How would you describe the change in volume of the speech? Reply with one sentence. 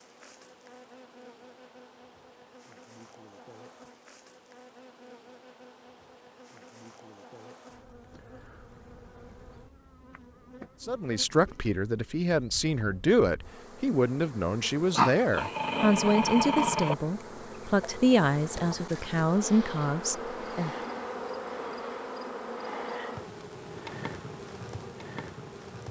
The loudness of the speech stays about the same.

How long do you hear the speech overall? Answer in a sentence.
You can hear the speech for 10 seconds altogether.